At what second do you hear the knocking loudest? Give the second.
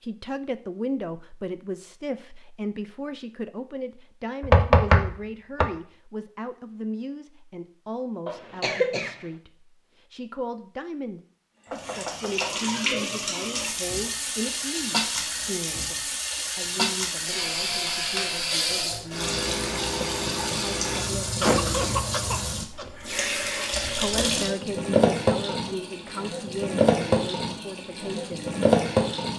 5 s.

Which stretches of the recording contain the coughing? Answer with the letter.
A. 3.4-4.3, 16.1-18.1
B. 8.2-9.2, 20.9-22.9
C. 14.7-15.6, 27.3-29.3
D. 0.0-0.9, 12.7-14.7
B.